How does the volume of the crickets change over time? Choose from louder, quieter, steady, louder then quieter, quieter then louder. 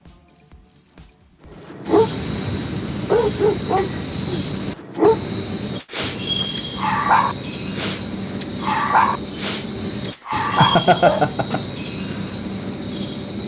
steady.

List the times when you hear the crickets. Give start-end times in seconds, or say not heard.
0.1-13.4.